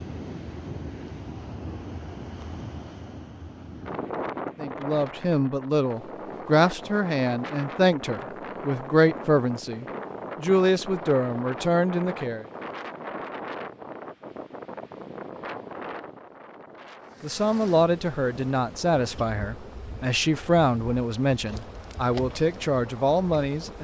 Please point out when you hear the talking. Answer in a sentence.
The talking can be heard from 4.5 to 12.4 s and from 17.2 to 23.7 s.